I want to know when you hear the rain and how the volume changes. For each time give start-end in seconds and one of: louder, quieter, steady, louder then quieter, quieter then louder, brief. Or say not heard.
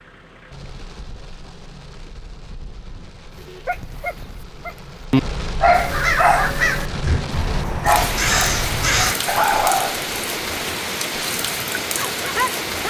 0.0-12.8 louder.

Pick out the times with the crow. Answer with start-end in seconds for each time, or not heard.
5.7-9.2.